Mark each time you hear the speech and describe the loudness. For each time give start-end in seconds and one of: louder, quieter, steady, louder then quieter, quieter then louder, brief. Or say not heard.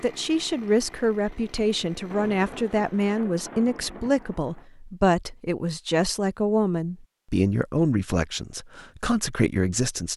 0.0-10.1 steady.